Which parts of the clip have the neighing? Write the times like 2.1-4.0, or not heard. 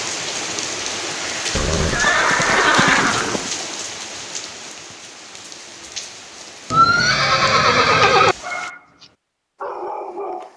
1.5-3.5, 6.7-8.3.